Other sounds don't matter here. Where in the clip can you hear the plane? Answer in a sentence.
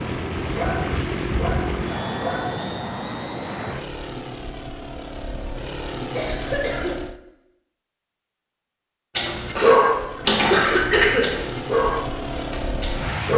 The plane can be heard from 0.0 to 7.2 s and from 9.6 to 13.3 s.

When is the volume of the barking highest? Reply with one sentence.
The volume of the barking peaks at 10 seconds.